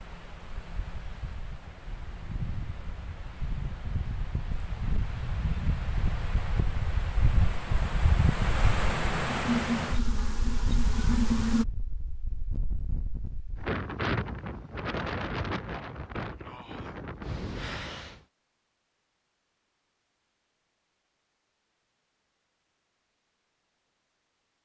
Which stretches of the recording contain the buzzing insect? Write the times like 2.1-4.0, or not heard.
9.2-11.7.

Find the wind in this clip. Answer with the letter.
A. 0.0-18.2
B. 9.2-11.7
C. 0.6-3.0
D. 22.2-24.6
A.